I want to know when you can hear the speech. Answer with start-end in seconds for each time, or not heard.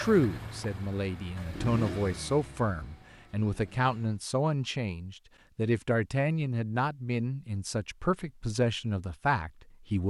0.0-10.0.